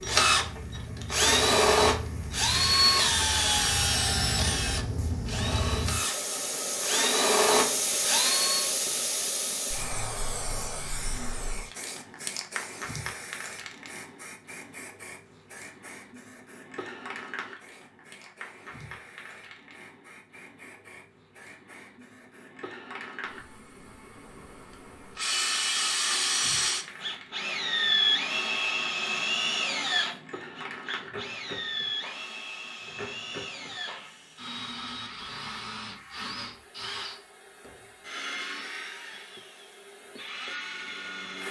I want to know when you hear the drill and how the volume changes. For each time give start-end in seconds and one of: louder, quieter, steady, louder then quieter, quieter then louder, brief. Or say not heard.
0.0-8.7 quieter then louder
25.1-41.4 quieter.